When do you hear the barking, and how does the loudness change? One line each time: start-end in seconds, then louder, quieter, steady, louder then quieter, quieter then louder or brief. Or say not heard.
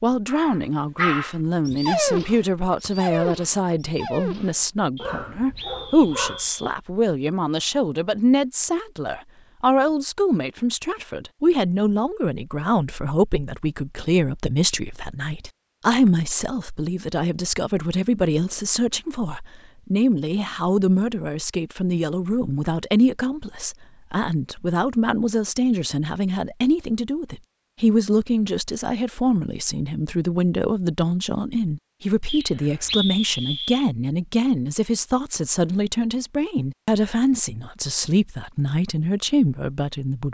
0.2-6.5 quieter.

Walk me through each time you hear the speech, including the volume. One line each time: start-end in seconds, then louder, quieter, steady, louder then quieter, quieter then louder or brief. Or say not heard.
0.0-40.2 steady.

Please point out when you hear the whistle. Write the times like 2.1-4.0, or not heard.
5.0-6.8, 32.2-33.9.